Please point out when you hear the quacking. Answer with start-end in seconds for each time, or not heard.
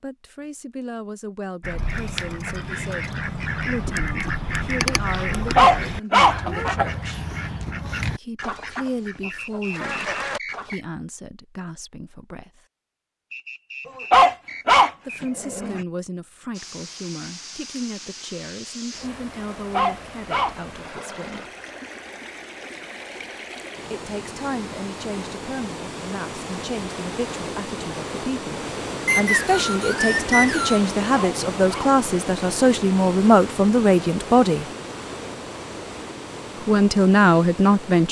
1.6-10.8.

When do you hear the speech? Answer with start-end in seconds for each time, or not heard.
0.0-7.2, 8.1-12.6, 15.1-21.4, 23.9-34.6, 36.6-38.0.